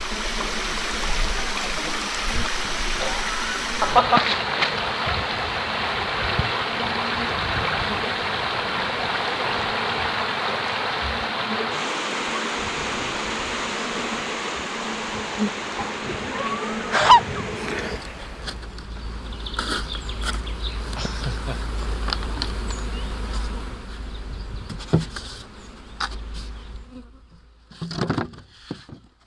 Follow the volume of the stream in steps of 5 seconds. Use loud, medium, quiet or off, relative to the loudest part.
loud, loud, loud, medium, off, off.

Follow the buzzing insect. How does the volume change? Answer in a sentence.
The loudness of the buzzing insect goes up.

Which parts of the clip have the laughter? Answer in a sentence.
The laughter can be heard from 2.6 to 4.2 s, from 15.8 to 17.4 s and from 20.9 to 21.6 s.